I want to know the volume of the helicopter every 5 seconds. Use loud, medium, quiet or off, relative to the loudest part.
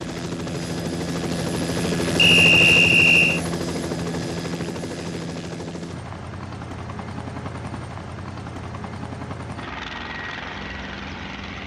loud, medium, medium.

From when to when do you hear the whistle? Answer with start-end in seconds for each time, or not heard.
2.1-3.4.